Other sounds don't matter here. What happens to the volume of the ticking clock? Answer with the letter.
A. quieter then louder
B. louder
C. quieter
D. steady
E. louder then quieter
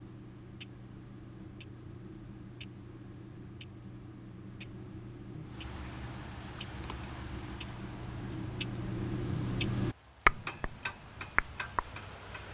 B.